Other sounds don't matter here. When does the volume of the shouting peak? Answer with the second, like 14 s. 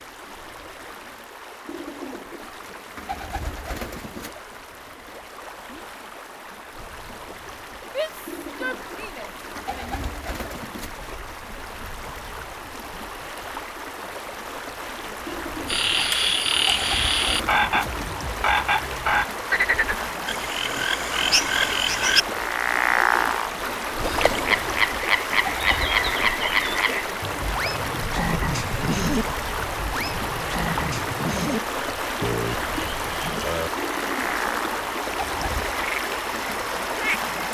8 s.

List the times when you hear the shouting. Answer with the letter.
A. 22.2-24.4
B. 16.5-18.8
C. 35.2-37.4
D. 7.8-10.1
D.